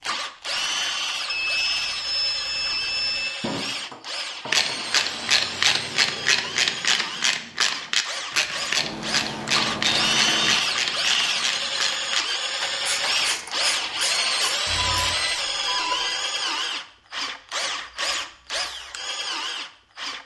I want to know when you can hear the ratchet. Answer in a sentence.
You can hear the ratchet from 4.5 to 15.2 s.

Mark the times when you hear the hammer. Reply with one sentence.
The hammer can be heard from 3.4 to 4.8 s.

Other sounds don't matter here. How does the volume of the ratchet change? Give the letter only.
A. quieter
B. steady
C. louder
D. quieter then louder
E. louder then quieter
A.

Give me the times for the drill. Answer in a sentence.
The drill can be heard from 0.0 to 20.2 s.